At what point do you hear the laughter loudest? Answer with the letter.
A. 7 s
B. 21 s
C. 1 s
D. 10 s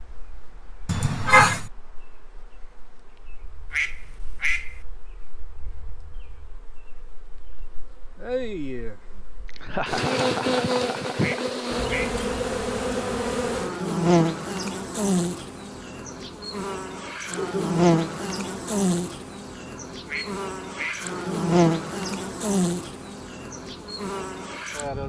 C.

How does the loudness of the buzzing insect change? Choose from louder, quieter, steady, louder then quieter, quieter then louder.
louder.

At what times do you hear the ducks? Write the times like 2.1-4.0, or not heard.
3.7-4.8, 11.2-12.2, 20.1-21.1.